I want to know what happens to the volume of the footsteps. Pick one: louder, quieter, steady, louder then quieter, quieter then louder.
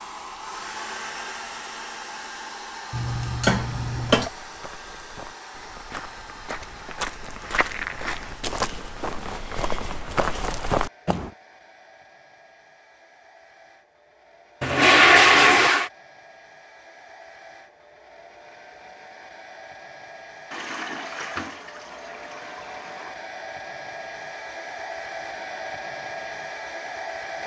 louder.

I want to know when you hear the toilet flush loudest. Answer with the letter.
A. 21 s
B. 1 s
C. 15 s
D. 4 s
C.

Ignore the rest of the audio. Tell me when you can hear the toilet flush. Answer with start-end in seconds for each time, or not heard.
2.9-4.3, 14.6-15.9, 20.5-23.2.